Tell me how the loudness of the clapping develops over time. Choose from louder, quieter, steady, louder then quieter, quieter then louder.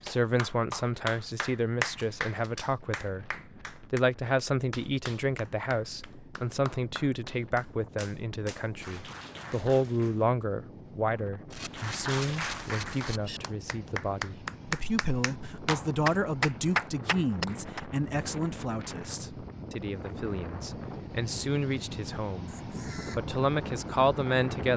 quieter then louder.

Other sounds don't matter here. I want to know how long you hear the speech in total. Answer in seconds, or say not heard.
24 s.